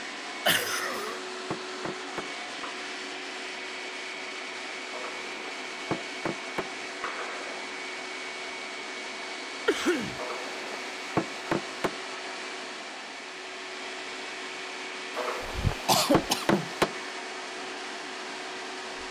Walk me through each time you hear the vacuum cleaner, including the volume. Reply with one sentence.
You can hear the vacuum cleaner from 0.0 to 19.0 s, at a steady volume.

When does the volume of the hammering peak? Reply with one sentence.
The loudest moment of the hammering is at 17 seconds.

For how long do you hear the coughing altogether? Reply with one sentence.
You can hear the coughing for 2 seconds altogether.